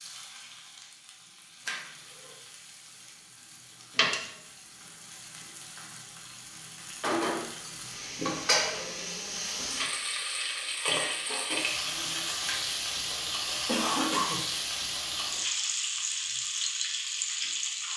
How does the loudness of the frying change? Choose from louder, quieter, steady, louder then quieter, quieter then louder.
louder.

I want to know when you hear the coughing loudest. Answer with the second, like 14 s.
14 s.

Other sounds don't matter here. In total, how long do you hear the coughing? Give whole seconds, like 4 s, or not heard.
3 s.